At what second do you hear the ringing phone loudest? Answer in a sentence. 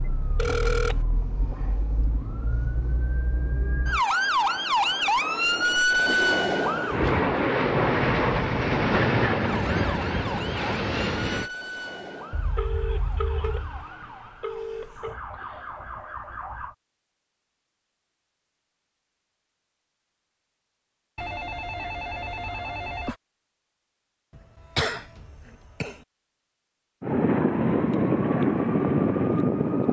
The loudest moment of the ringing phone is at 1 second.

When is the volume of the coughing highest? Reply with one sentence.
The volume of the coughing peaks at 25 seconds.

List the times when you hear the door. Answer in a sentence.
You can't hear the door here.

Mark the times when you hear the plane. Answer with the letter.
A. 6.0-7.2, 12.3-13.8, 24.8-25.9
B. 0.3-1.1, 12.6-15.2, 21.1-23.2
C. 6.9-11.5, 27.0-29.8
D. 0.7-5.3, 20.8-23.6
C.